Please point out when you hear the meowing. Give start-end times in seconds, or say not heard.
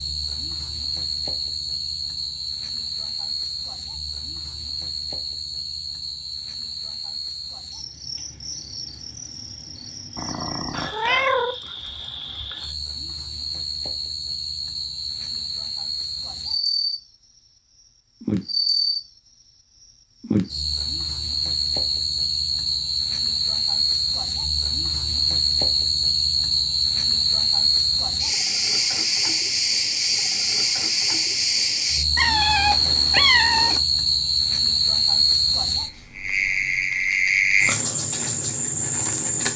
10.2-11.6, 32.1-33.8.